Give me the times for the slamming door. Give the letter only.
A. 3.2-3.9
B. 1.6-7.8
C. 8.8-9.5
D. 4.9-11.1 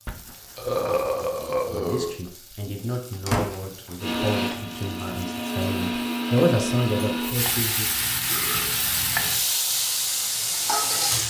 A.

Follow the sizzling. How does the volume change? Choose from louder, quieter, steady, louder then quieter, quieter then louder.
louder.